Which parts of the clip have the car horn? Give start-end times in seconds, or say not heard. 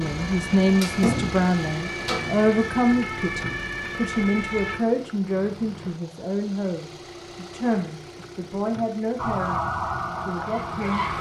not heard.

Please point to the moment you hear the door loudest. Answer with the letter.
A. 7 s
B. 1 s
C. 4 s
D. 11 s
B.